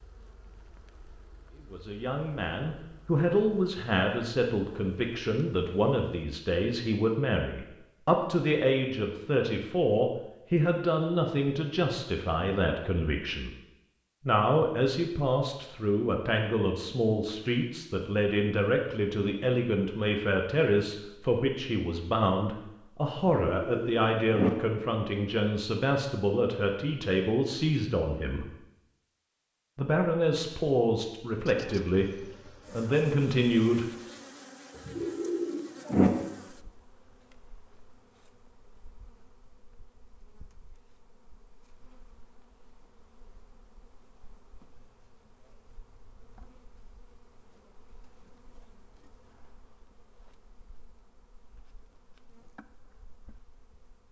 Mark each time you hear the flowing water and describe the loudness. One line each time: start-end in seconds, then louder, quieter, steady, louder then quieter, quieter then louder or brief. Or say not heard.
not heard.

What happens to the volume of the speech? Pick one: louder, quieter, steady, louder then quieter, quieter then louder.
steady.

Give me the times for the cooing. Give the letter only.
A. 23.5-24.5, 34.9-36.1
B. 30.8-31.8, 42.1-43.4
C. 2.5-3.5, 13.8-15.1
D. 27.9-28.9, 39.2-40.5
A.